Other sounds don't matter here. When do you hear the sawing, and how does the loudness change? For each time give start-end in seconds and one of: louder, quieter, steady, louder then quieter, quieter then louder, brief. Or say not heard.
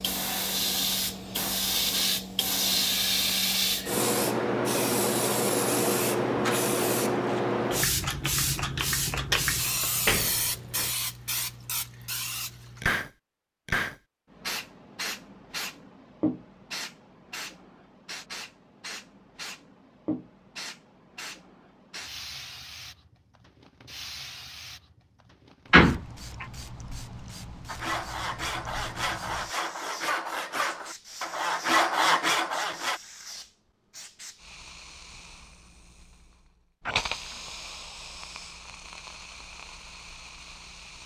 27.6-33.0 louder.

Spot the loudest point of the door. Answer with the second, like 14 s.
26 s.